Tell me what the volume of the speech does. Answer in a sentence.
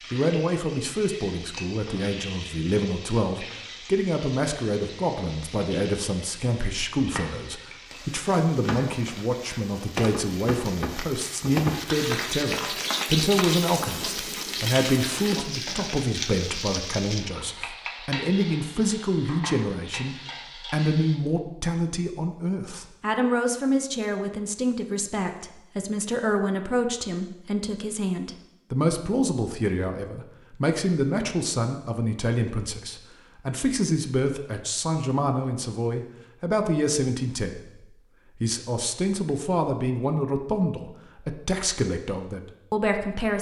The loudness of the speech stays about the same.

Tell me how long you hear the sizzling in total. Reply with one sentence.
You can hear the sizzling for 21 seconds altogether.